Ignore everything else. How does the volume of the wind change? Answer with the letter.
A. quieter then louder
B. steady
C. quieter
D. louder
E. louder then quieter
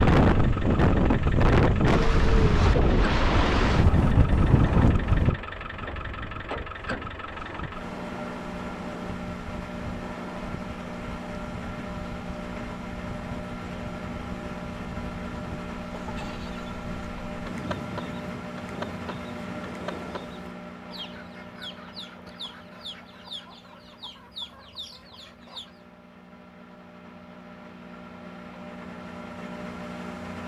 C.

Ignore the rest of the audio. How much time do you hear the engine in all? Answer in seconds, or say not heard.
30 s.